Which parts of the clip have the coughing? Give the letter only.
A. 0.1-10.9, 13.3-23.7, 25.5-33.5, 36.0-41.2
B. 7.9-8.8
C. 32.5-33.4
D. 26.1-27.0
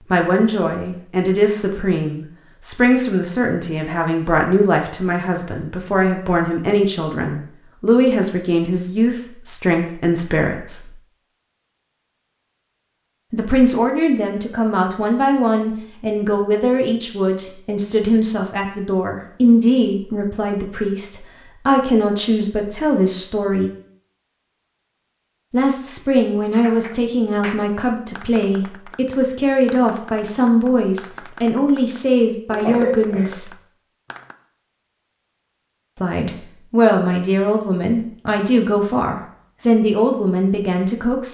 C.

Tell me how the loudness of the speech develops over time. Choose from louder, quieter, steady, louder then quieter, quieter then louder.
steady.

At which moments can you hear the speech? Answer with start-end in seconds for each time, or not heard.
0.1-10.9, 13.3-23.7, 25.5-33.5, 36.0-41.2.